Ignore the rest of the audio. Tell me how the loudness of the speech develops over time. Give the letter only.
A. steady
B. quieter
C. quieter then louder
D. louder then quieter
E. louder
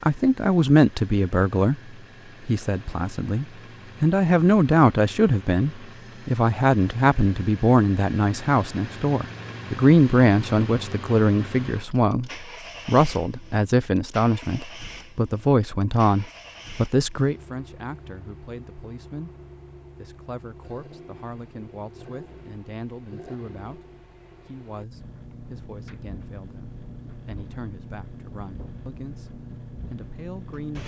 B.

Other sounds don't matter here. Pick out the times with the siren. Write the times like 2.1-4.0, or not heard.
not heard.